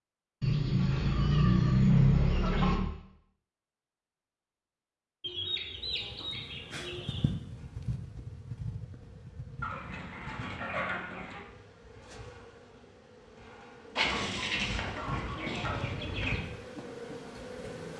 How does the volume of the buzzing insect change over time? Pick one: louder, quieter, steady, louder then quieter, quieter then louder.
quieter then louder.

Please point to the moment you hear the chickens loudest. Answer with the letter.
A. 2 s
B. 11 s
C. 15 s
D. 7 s
A.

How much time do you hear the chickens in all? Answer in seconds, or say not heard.
9 s.